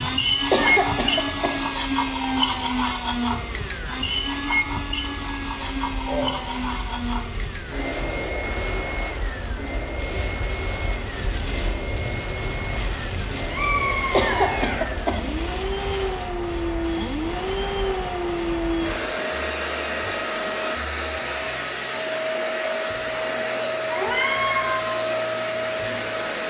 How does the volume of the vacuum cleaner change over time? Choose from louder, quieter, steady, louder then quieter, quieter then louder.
quieter then louder.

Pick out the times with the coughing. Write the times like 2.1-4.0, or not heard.
0.5-1.7, 14.1-15.3.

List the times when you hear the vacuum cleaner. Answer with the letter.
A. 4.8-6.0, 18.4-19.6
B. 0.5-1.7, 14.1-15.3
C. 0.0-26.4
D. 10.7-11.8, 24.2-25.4
C.